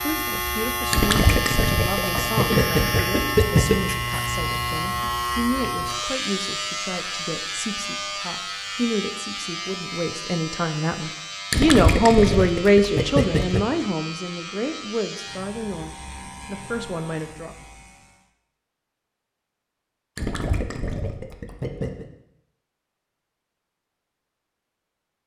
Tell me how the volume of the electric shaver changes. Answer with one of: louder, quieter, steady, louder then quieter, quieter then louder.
quieter.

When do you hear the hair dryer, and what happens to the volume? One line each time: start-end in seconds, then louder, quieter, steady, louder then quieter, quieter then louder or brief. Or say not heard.
not heard.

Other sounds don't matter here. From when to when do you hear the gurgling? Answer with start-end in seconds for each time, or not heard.
0.9-3.8, 11.5-13.6, 20.1-22.1.